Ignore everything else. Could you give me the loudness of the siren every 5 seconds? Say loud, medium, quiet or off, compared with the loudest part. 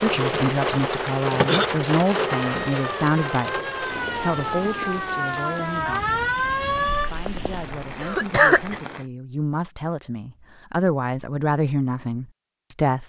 medium, loud, off.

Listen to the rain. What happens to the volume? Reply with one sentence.
The loudness of the rain goes down.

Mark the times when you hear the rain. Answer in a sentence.
The rain can be heard from 0.0 to 9.1 s.